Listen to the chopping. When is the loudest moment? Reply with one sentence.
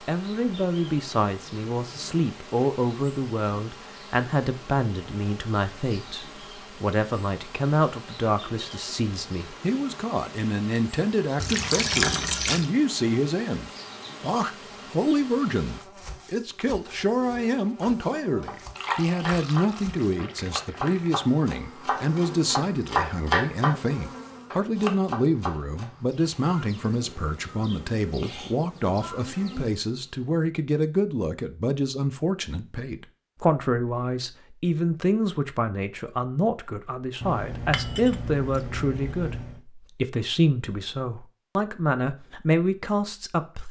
The volume of the chopping peaks at 23 seconds.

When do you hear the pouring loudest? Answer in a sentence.
The volume of the pouring peaks at 12 seconds.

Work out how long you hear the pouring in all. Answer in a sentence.
The pouring can be heard for 6 seconds in total.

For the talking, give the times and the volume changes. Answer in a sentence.
You can hear the talking from 0.1 to 43.6 s, at a steady volume.